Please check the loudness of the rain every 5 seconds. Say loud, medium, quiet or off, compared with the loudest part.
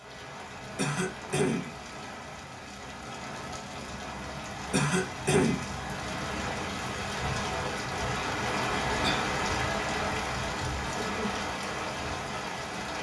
medium, loud, loud.